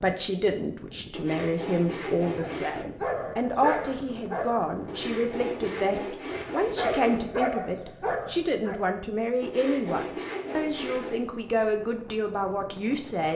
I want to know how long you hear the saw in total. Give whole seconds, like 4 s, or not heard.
6 s.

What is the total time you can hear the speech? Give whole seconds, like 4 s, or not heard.
13 s.